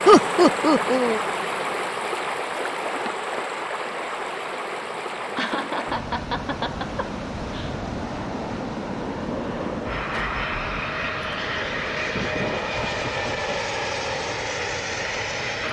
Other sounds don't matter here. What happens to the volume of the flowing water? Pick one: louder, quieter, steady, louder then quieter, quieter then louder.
quieter.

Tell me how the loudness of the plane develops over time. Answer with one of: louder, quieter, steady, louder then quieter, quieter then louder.
louder.